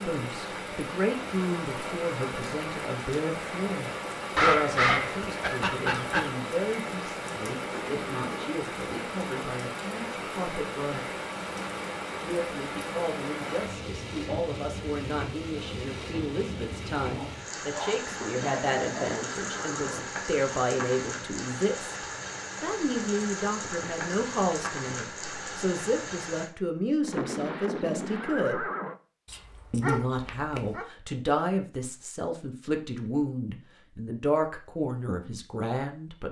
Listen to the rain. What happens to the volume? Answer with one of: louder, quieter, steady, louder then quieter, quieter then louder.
steady.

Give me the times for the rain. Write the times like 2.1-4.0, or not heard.
0.0-26.5.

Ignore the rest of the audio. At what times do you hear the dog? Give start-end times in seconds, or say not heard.
4.3-6.3, 17.1-19.2, 29.2-30.9.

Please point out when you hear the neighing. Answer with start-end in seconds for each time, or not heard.
7.6-8.6, 18.1-20.1, 27.0-29.0.